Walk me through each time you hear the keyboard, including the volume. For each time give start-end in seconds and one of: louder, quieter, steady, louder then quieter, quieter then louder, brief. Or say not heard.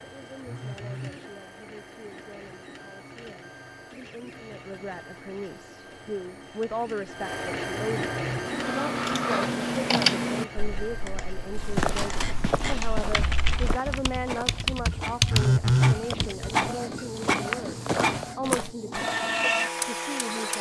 8.4-16.6 quieter then louder.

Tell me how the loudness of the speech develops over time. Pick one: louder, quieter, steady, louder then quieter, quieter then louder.
louder.